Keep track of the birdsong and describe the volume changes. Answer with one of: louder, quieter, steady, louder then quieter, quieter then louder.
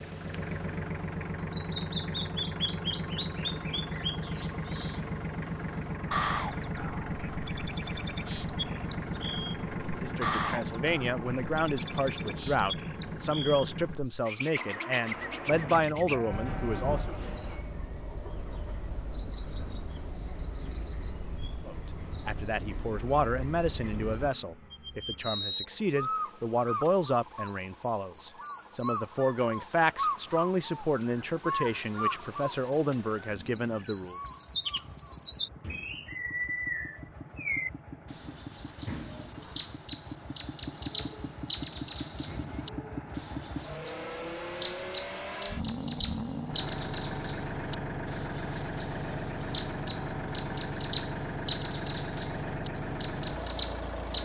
steady.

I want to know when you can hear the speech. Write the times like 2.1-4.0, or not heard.
9.9-17.1, 21.6-34.1.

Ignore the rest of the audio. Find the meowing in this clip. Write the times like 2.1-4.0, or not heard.
not heard.